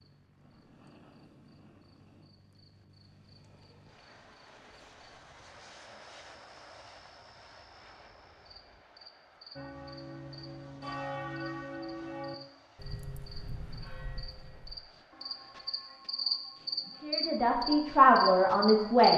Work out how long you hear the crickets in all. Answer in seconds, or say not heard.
19 s.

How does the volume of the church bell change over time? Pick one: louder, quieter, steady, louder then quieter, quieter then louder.
quieter.